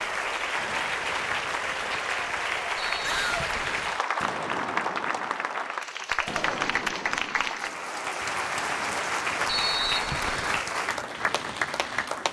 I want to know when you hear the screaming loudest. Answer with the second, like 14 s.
3 s.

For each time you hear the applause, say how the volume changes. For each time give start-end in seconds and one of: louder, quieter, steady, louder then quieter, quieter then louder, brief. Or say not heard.
0.0-12.2 steady.